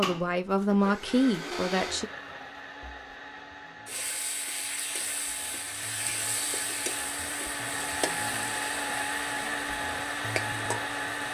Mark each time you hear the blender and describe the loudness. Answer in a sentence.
You can hear the blender from 0.0 to 11.3 s, getting quieter then louder.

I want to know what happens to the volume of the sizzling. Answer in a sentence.
The volume of the sizzling stays about the same.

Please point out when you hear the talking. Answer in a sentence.
You can hear the talking from 0.0 to 2.1 s.